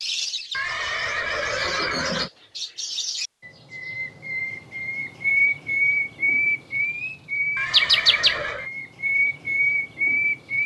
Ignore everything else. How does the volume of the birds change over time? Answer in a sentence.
The loudness of the birds goes up.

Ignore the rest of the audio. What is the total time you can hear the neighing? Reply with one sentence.
You can hear the neighing for 3 seconds altogether.